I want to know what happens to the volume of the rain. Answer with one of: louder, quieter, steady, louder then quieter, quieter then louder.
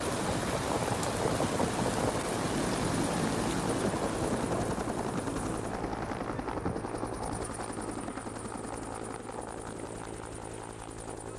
quieter.